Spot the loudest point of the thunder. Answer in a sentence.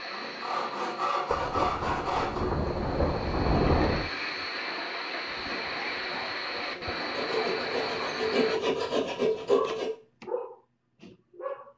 The volume of the thunder peaks at 4 seconds.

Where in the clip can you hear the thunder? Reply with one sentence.
The thunder can be heard from 1.2 to 4.1 s.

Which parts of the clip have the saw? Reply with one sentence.
You can hear the saw from 0.1 to 2.5 s and from 7.1 to 9.9 s.